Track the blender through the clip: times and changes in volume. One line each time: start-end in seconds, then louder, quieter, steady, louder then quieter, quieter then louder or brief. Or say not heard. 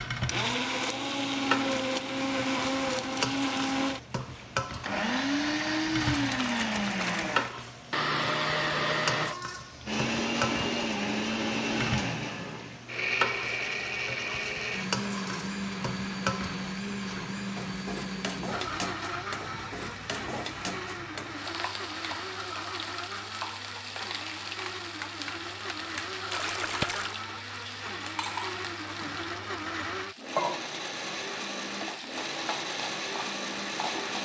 0.2-34.1 quieter.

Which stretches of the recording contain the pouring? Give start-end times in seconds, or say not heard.
6.1-7.3, 26.3-27.2.